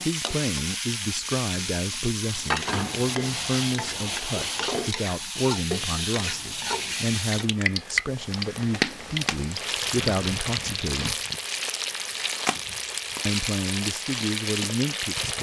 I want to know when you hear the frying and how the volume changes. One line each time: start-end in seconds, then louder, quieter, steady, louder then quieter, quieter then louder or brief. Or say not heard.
0.0-15.3 steady.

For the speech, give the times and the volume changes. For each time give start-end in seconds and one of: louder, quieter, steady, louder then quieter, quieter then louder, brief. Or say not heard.
0.1-11.2 steady
13.2-15.3 brief.